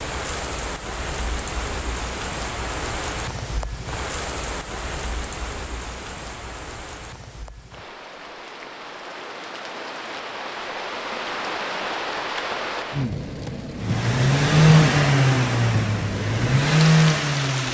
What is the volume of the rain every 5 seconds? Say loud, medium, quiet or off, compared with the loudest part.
loud, medium, loud, loud.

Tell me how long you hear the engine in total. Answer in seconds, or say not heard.
4 s.